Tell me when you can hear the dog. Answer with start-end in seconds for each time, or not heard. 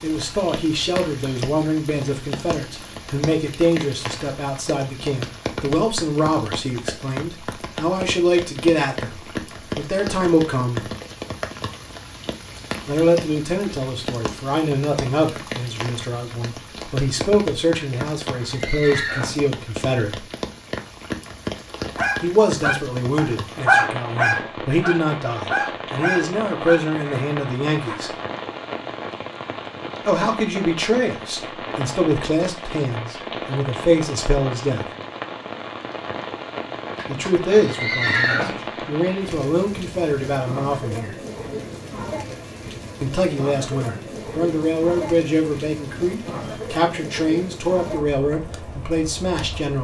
21.9-27.9.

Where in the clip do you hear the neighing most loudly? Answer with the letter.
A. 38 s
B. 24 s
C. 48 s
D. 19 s
A.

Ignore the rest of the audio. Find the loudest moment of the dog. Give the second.
24 s.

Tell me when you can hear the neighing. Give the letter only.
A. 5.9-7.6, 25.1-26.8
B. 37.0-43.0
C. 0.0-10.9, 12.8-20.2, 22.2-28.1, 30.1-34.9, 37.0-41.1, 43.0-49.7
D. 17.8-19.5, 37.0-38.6
D.